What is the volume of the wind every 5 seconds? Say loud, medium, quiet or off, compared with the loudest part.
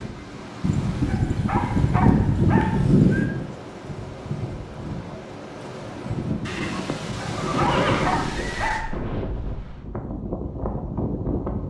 medium, loud, loud.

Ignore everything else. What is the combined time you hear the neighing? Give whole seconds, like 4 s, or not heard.
5 s.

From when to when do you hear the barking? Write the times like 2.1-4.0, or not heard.
1.1-2.9, 7.2-8.9.